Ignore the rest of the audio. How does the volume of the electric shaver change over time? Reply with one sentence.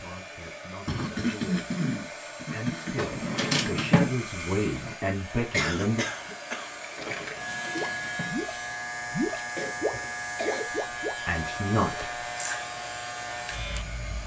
The loudness of the electric shaver goes up.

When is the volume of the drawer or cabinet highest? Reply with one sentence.
The volume of the drawer or cabinet peaks at 4 seconds.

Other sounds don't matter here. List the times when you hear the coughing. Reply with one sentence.
You can hear the coughing from 0.8 to 3.0 s, from 5.5 to 7.2 s and from 9.6 to 10.7 s.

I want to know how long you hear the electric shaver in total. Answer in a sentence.
You can hear the electric shaver for 9 seconds altogether.